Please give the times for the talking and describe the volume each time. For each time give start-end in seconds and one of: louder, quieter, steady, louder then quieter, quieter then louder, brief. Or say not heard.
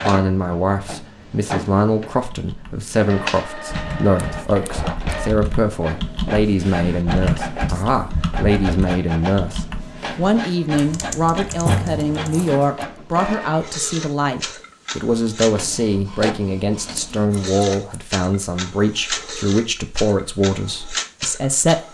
0.0-21.8 steady.